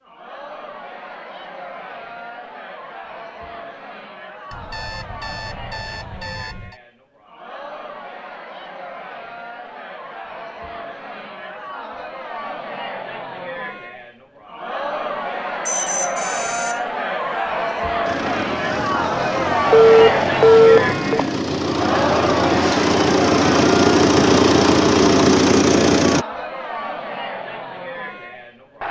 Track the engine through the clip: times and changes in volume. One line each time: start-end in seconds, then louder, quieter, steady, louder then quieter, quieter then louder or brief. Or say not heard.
18.1-26.2 louder.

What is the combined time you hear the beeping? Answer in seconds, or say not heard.
5 s.